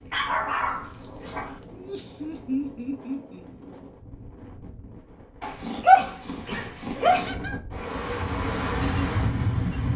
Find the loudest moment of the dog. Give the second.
6 s.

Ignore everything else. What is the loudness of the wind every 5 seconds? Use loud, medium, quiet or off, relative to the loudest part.
quiet, loud.